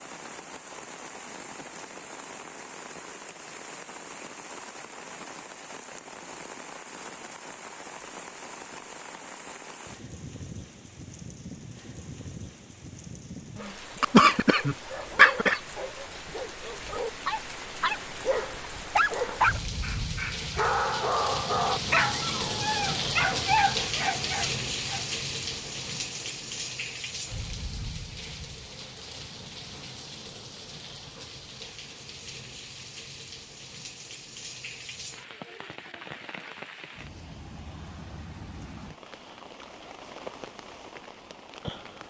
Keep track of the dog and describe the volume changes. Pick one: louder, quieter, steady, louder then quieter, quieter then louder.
louder.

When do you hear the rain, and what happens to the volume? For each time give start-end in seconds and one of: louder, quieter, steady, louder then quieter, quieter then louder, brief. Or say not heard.
0.0-42.0 louder then quieter.